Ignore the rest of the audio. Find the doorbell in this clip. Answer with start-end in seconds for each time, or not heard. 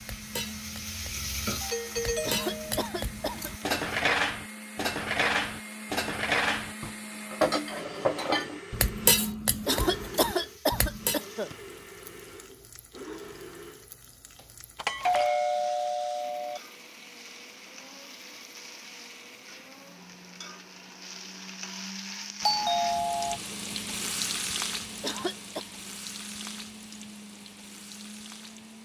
1.6-2.9, 14.8-16.6, 22.4-23.4.